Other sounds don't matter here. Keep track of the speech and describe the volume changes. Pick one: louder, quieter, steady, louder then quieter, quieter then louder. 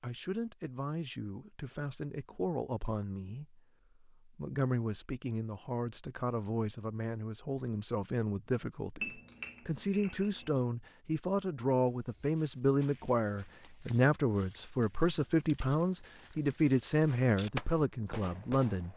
louder.